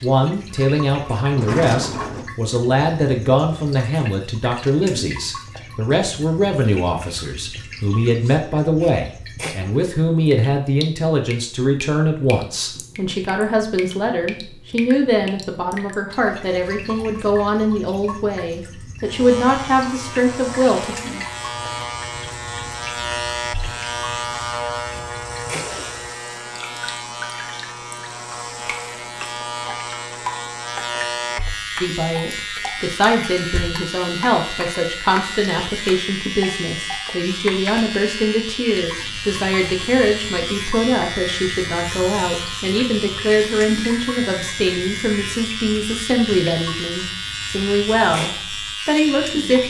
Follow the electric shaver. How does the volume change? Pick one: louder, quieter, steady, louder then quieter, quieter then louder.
steady.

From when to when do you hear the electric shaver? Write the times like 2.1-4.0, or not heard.
19.1-49.6.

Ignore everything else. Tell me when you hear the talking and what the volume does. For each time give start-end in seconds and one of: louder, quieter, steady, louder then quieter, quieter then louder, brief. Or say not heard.
0.0-20.9 steady
31.8-49.6 steady.